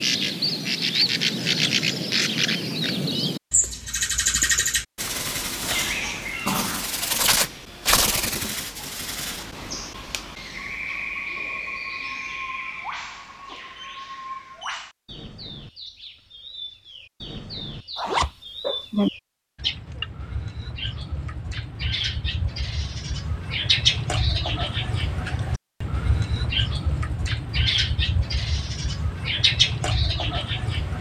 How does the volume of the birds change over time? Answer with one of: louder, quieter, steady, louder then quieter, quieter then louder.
quieter then louder.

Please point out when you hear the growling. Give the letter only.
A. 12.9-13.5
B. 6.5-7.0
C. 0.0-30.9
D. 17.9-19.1
B.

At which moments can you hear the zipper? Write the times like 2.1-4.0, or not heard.
17.9-19.1.